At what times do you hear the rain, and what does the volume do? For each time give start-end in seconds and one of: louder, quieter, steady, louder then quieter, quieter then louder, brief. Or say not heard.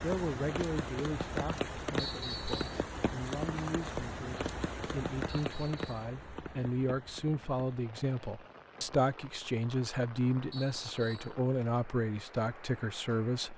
0.0-13.5 quieter.